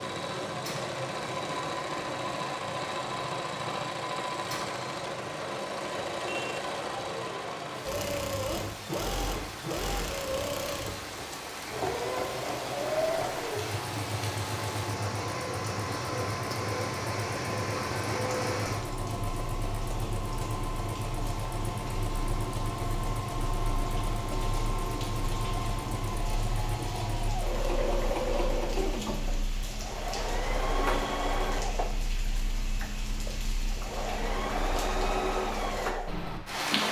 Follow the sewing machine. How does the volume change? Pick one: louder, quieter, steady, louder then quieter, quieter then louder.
steady.